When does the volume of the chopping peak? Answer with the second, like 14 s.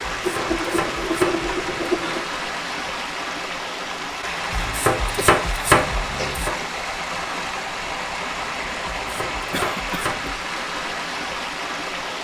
6 s.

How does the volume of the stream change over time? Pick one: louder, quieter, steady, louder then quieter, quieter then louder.
steady.